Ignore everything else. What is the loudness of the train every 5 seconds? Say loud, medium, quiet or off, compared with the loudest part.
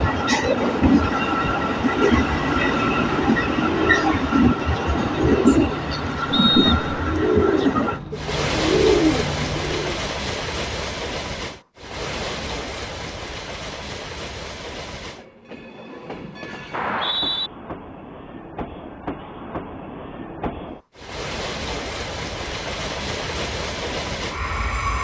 loud, loud, medium, quiet, medium.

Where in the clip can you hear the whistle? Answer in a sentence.
You can hear the whistle from 6.3 to 7.0 s and from 16.7 to 17.5 s.